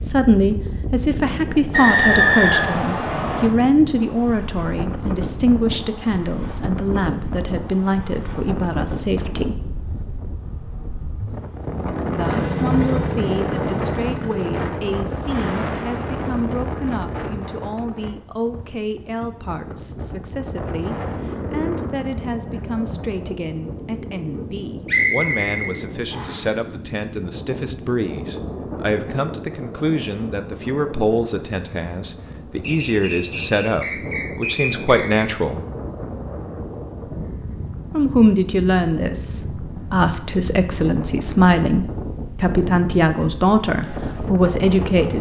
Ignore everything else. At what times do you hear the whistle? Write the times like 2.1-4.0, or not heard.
1.7-3.5, 24.9-26.4, 32.6-35.2.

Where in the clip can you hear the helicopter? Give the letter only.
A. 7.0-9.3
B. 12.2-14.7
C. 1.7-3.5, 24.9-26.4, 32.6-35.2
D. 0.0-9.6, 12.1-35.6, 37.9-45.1
B.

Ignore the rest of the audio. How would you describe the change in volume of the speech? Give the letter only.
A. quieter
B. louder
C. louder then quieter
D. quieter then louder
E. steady
D.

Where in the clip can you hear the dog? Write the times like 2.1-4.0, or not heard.
not heard.